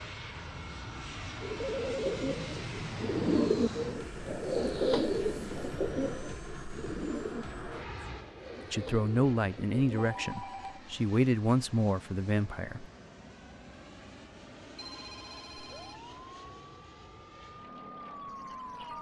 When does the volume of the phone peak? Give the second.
2 s.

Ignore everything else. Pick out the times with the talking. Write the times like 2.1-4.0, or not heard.
8.7-12.8.